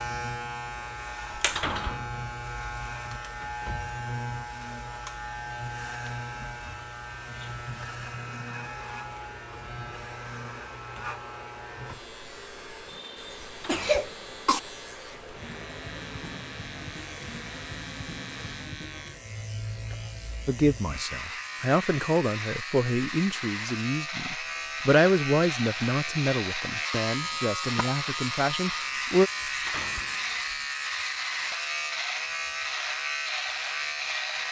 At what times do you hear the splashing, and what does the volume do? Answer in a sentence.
You can't hear the splashing here.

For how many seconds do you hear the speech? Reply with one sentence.
You can hear the speech for 9 seconds altogether.